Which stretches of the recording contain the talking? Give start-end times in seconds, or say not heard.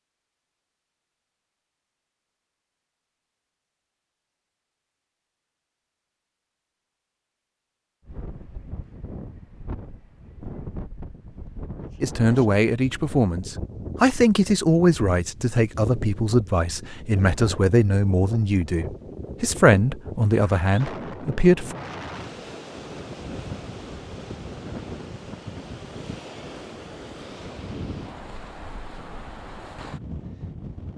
12.0-21.8.